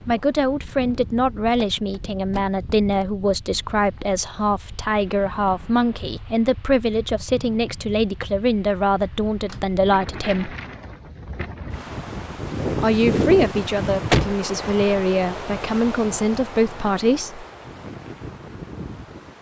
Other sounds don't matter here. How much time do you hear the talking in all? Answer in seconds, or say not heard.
15 s.